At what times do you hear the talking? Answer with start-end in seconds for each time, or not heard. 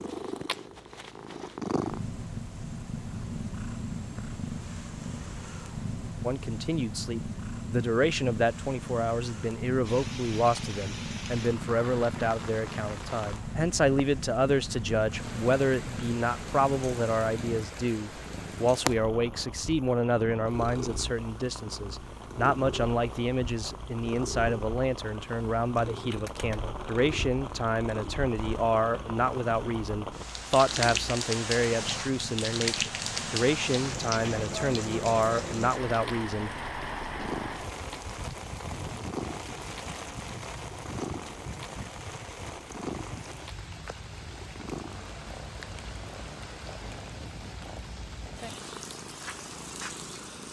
6.2-36.5.